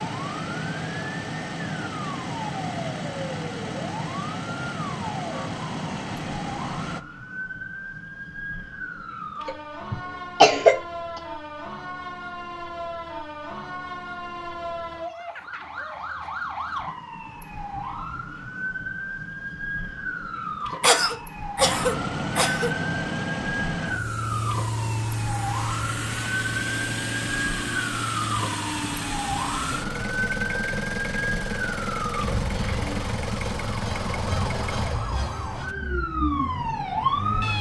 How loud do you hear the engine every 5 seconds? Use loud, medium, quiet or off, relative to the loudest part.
loud, loud, off, off, loud, loud, loud, medium.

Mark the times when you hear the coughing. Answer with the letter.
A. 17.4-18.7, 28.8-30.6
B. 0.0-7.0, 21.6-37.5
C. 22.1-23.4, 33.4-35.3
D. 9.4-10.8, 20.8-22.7
D.